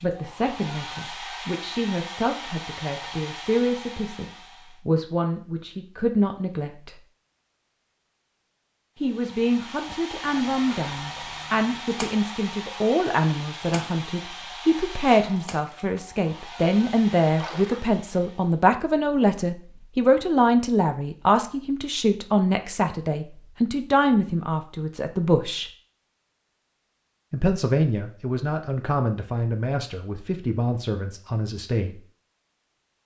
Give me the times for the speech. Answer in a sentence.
The speech can be heard from 0.0 to 7.0 s, from 8.9 to 25.7 s and from 27.3 to 32.0 s.